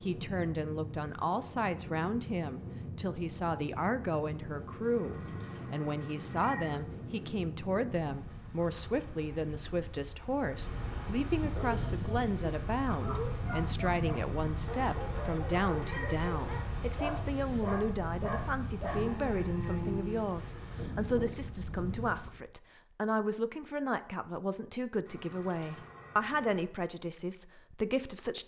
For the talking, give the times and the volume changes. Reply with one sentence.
The talking can be heard from 0.0 to 28.4 s, at a steady volume.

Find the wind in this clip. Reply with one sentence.
You can hear the wind from 0.0 to 22.4 s.